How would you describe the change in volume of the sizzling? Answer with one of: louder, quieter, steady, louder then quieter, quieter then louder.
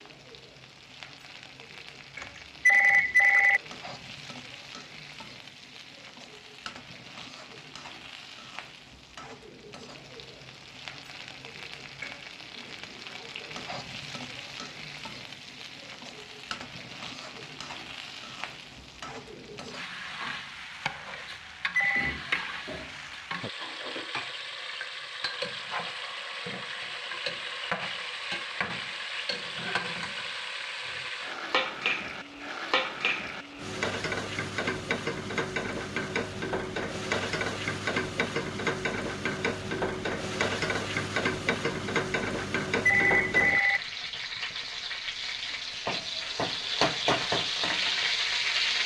louder.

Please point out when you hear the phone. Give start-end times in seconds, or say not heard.
2.2-3.6, 21.3-22.2, 42.4-43.8.